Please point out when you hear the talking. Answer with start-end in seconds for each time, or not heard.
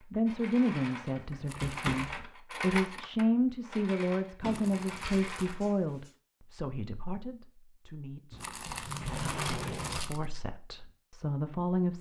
0.1-11.9.